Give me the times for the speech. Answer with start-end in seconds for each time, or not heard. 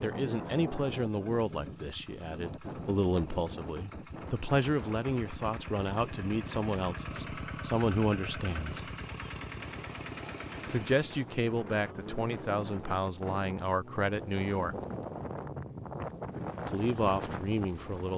0.0-8.9, 10.7-14.8, 16.6-18.1.